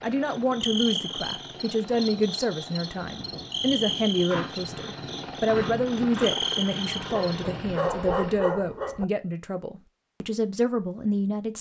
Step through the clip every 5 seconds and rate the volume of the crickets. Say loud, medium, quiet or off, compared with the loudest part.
loud, loud, off.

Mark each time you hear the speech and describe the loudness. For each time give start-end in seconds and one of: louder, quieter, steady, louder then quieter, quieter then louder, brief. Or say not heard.
0.0-11.5 steady.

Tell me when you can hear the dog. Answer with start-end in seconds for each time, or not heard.
7.1-9.1.